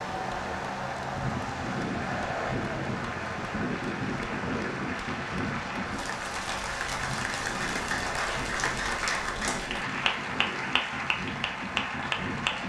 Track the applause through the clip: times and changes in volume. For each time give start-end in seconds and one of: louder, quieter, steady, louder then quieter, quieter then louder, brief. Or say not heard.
0.0-12.6 louder.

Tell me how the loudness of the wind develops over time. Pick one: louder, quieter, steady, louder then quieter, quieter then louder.
quieter.